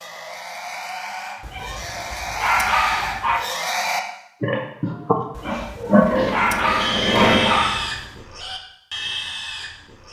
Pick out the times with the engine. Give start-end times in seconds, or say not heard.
5.8-7.8.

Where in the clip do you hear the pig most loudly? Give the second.
6 s.